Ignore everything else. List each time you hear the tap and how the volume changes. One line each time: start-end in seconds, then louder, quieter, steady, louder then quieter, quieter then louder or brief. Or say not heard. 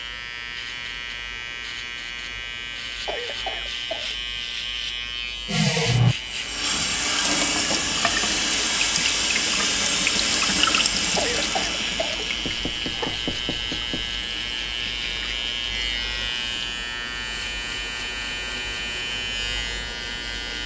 5.5-16.8 quieter.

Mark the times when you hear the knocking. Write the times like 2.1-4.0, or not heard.
12.4-14.1.